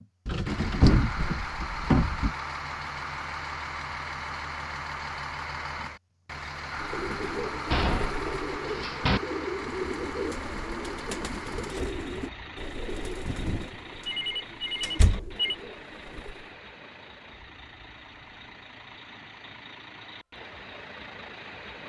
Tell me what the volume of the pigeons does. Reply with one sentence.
The loudness of the pigeons goes down.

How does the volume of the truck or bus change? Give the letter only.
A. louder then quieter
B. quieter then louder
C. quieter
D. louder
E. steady
C.